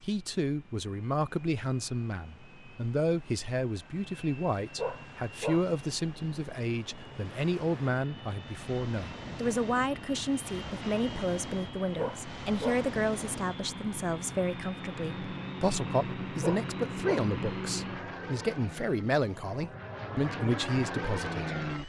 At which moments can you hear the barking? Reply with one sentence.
The barking can be heard from 4.8 to 5.7 s, from 11.9 to 12.9 s and from 16.4 to 17.3 s.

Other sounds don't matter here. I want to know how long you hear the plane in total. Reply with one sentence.
The plane can be heard for 22 seconds in total.